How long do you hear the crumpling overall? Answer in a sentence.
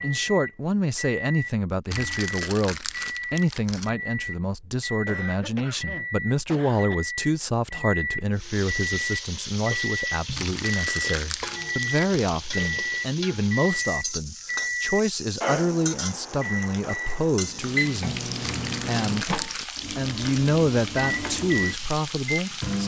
You can hear the crumpling for 6 seconds altogether.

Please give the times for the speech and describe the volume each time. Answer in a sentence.
You can hear the speech from 0.0 to 18.2 s, at a steady volume; briefly from 18.9 to 19.3 s; and briefly from 19.9 to 22.8 s.